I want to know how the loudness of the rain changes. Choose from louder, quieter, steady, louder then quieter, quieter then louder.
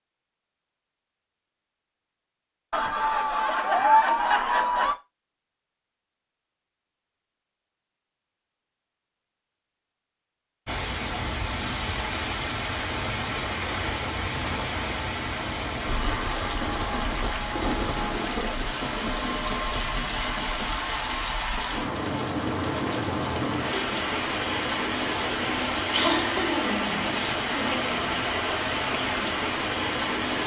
steady.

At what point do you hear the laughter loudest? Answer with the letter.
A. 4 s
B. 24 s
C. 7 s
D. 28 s
A.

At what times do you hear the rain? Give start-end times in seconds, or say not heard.
10.7-30.4.